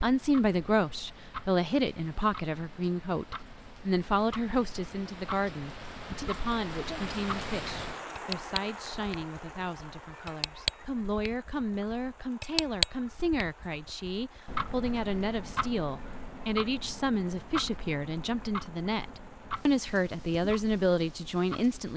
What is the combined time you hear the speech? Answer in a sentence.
The speech can be heard for 22 seconds in total.